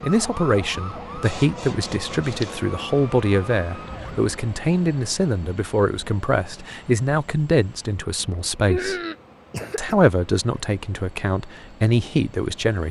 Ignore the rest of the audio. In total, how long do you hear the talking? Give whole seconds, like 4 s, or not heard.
12 s.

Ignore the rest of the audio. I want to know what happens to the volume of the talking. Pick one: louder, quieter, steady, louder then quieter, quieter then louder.
steady.